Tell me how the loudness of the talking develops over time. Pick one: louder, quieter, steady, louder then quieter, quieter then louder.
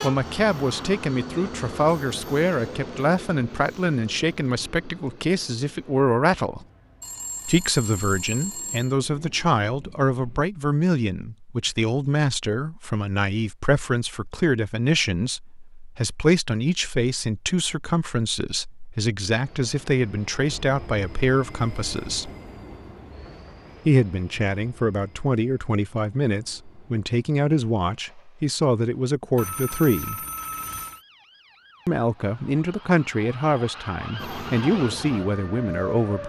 steady.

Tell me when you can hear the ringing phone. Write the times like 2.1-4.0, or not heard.
7.0-8.9, 29.4-31.0.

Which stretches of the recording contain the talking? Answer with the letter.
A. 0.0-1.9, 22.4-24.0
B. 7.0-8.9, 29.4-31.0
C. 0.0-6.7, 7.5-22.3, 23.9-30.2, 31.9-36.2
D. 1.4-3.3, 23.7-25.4
C.